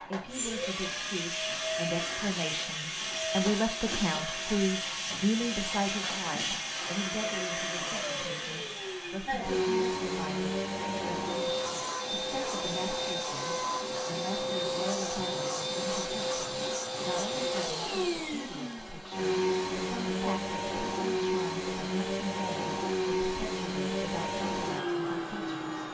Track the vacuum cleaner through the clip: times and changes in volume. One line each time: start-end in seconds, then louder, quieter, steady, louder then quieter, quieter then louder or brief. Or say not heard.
0.0-25.8 steady.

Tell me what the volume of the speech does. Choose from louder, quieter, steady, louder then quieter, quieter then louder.
quieter.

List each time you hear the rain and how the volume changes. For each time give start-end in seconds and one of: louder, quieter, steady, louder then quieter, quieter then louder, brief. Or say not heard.
not heard.